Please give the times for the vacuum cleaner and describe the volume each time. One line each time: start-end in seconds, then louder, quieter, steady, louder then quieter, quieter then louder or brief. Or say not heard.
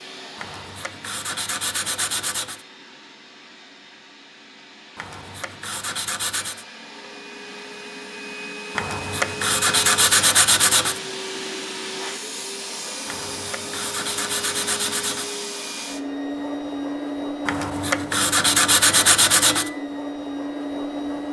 0.0-21.2 louder.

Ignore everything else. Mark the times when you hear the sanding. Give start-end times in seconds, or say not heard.
0.3-2.6, 5.0-6.7, 8.8-11.0, 13.1-15.3, 17.4-19.7.